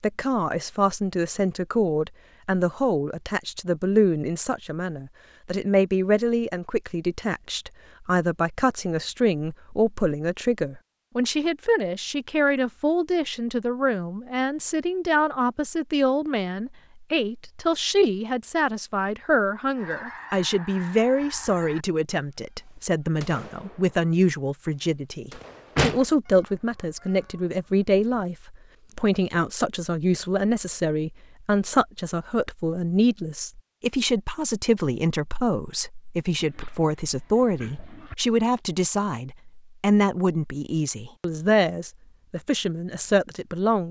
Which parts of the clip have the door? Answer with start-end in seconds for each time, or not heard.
25.4-26.1.